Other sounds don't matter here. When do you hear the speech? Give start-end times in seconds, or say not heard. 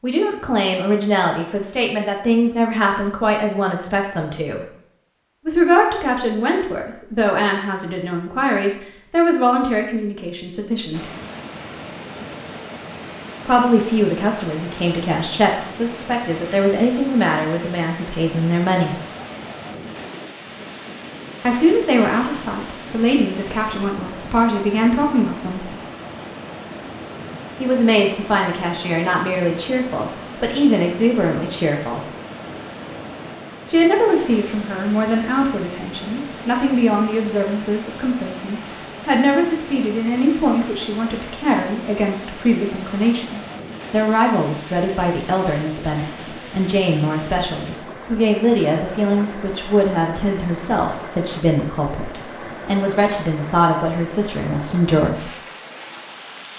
0.0-4.7, 5.5-11.1, 13.4-18.9, 21.4-25.7, 27.6-32.0, 33.7-55.3.